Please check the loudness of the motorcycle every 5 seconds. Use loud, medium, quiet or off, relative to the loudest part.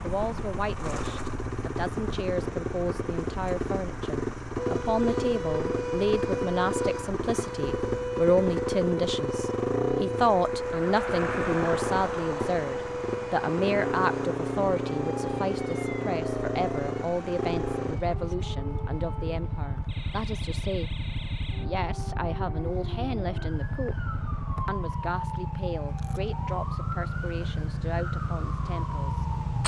loud, loud, loud, loud, medium, loud.